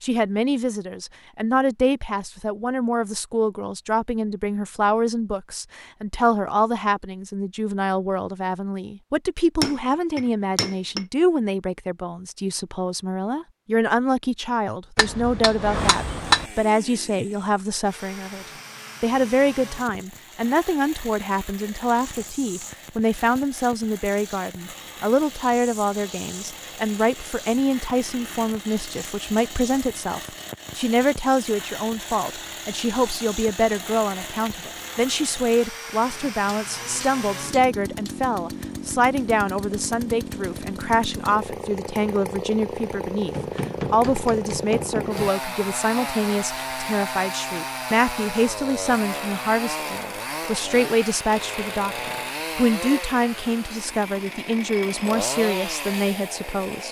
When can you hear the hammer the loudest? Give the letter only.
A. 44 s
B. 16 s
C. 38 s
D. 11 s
B.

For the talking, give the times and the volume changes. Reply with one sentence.
The talking can be heard from 0.0 to 56.8 s, at a steady volume.